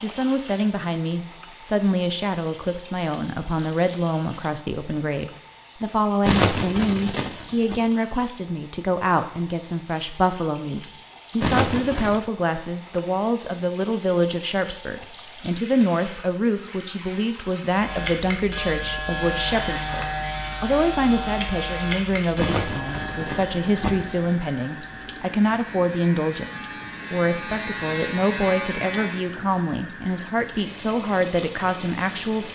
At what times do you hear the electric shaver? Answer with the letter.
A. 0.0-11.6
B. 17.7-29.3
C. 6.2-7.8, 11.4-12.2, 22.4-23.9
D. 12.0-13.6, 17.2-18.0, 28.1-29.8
B.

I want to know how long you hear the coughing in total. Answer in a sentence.
You can hear the coughing for 4 seconds altogether.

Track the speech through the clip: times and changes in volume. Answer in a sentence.
The speech can be heard from 0.0 to 32.5 s, at a steady volume.